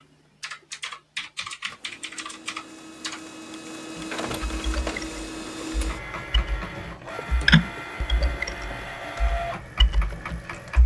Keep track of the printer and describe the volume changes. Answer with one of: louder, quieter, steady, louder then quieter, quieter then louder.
louder.